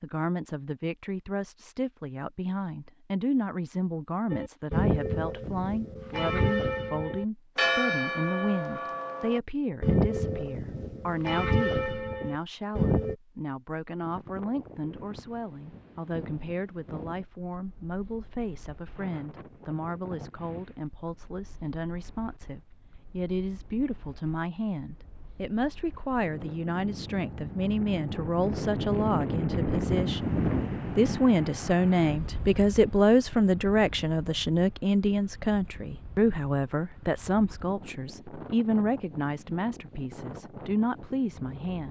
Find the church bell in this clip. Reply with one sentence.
You can hear the church bell from 4.3 to 13.2 s.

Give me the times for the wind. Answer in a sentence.
You can hear the wind from 14.0 to 41.8 s.